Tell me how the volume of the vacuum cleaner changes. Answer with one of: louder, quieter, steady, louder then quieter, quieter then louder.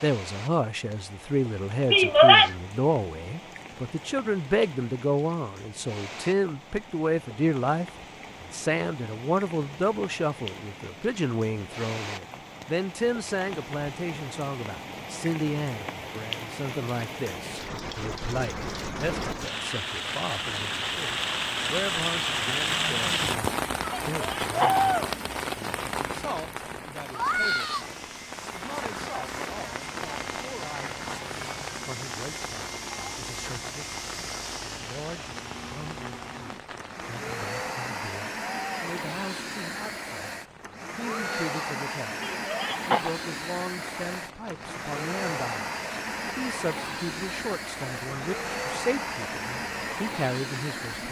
louder.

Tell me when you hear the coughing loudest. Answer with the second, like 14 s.
2 s.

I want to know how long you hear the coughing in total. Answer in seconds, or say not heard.
2 s.